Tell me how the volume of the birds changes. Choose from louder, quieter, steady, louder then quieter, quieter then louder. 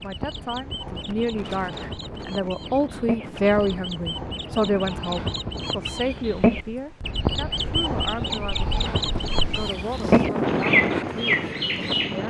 louder.